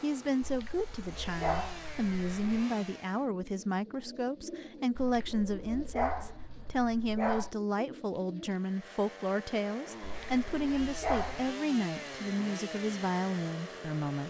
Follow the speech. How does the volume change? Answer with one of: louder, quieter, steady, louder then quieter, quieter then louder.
steady.